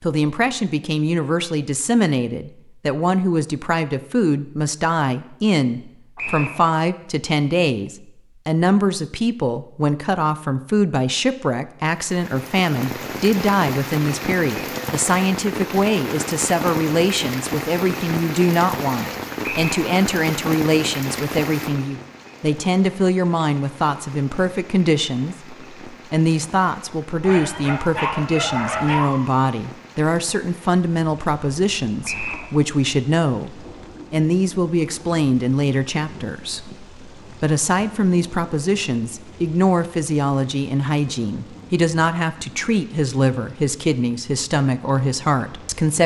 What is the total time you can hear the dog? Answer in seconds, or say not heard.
2 s.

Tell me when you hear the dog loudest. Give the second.
29 s.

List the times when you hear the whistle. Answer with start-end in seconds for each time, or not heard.
6.2-6.6, 19.4-19.9, 32.0-32.5.